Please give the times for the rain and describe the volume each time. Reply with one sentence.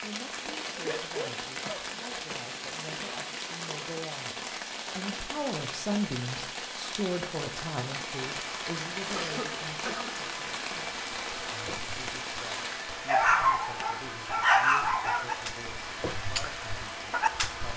You can hear the rain from 0.0 to 17.7 s, getting quieter.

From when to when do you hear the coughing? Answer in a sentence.
The coughing can be heard from 0.8 to 2.4 s and from 9.2 to 10.2 s.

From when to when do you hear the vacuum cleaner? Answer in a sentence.
You can hear the vacuum cleaner from 7.9 to 17.7 s.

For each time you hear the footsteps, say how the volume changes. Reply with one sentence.
You can't hear the footsteps here.